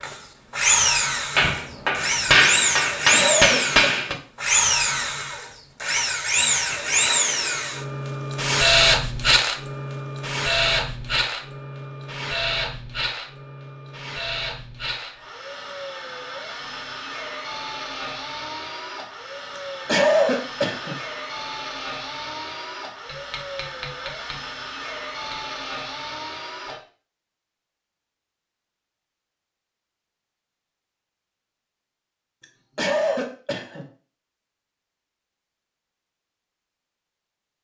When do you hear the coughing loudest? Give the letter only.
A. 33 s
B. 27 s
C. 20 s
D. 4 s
C.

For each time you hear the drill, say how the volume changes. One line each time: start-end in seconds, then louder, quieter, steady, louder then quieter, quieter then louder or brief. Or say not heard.
0.0-26.8 quieter.